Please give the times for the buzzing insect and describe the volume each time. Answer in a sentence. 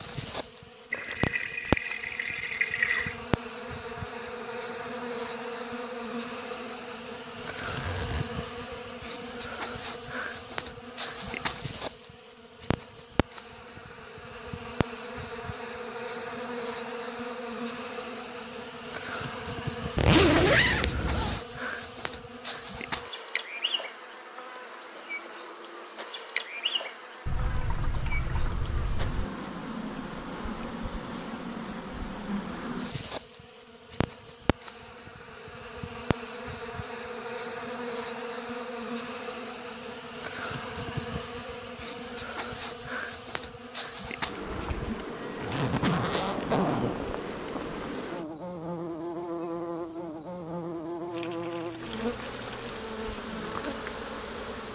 The buzzing insect can be heard from 0.0 to 54.6 s, at a steady volume.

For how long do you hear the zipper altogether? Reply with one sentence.
The zipper can be heard for 5 seconds in total.